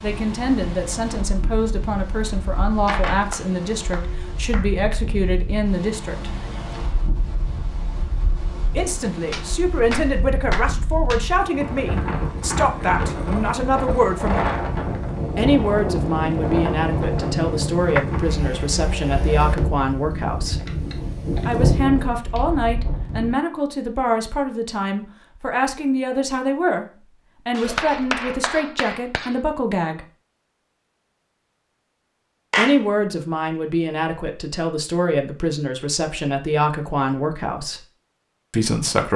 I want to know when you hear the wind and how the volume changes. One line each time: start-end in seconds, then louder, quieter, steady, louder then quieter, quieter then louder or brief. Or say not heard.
0.0-23.4 louder.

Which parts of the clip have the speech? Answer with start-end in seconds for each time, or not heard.
0.0-6.3, 8.8-14.4, 15.3-20.6, 21.4-30.1, 32.5-37.9, 38.5-39.1.